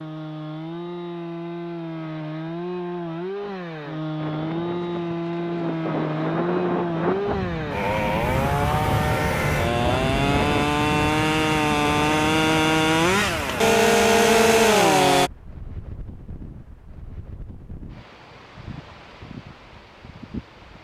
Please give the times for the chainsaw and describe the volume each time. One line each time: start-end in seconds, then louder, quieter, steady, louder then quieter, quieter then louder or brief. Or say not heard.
0.0-15.3 louder.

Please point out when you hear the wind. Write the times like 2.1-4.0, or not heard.
4.2-20.7.